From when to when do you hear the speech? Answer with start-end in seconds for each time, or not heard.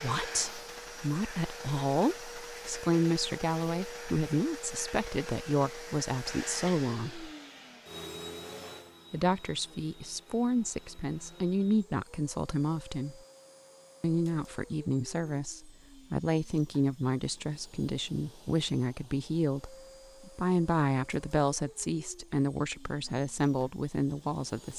0.0-7.3, 9.1-13.2, 14.0-24.7.